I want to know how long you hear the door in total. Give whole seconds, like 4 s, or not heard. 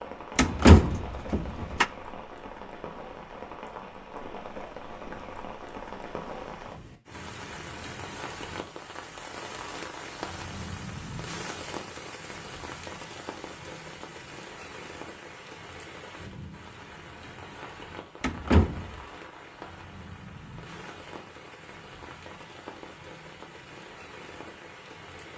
2 s.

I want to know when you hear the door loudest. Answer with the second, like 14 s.
1 s.